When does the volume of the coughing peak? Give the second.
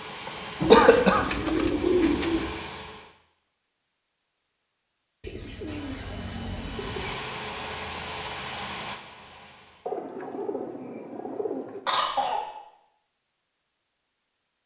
1 s.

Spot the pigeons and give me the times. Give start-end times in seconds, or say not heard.
0.6-2.5, 5.2-7.2, 9.8-11.8.